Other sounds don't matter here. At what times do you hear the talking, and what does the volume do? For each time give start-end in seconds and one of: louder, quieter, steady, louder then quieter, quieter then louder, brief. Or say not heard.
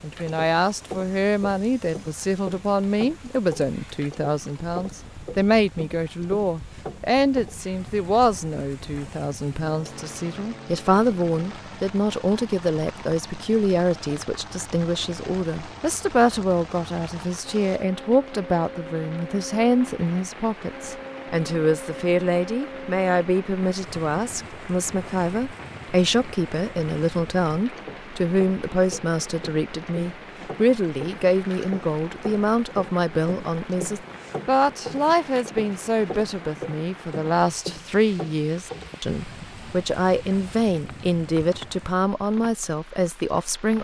0.0-43.7 steady.